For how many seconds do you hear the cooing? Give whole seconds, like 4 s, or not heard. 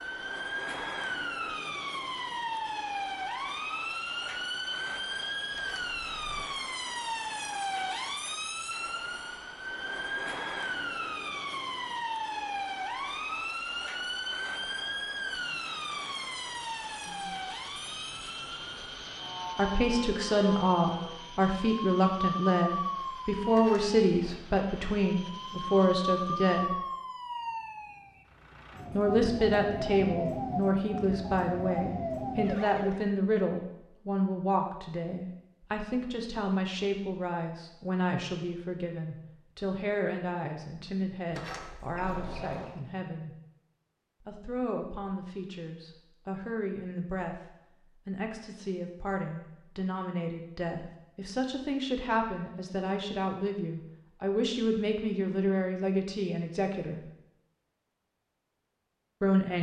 not heard.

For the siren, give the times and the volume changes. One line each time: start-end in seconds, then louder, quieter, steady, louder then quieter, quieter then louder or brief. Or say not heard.
0.0-33.0 steady.